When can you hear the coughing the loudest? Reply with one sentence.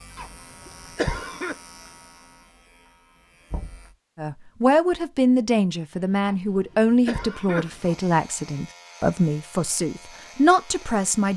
The loudest moment of the coughing is at 1 second.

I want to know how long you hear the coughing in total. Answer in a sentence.
You can hear the coughing for 3 seconds altogether.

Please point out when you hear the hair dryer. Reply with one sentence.
You can't hear the hair dryer here.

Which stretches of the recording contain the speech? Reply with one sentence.
You can hear the speech from 4.2 to 11.3 s.